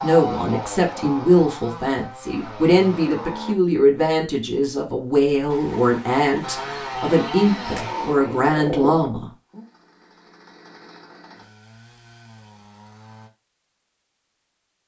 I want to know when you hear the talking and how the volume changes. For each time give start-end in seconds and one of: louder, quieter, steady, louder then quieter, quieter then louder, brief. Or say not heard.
0.0-9.3 steady.